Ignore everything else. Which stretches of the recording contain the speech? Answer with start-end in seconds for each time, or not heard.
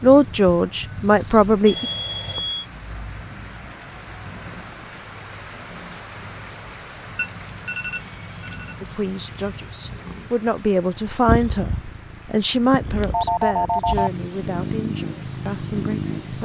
0.0-1.9, 8.8-16.4.